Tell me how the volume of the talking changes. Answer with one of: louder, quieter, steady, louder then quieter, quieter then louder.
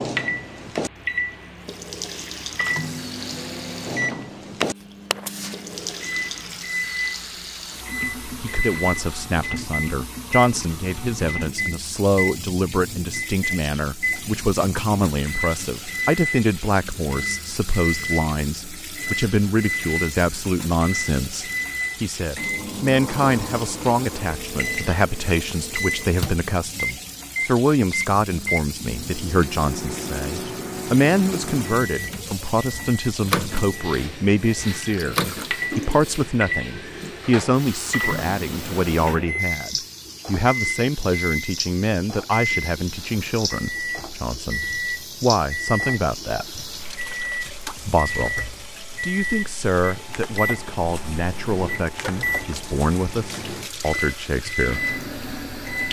steady.